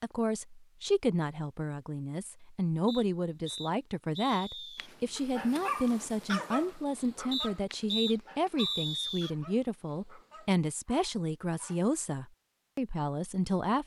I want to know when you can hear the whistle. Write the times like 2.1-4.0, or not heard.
2.9-4.9, 7.3-9.3.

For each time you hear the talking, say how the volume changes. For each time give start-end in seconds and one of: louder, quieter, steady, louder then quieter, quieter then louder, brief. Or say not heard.
0.0-13.8 steady.